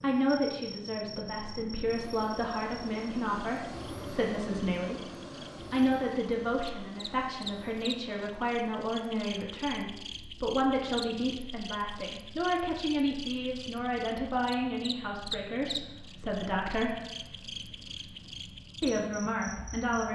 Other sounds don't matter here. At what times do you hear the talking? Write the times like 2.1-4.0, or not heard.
0.0-5.1, 5.7-17.0, 18.8-20.1.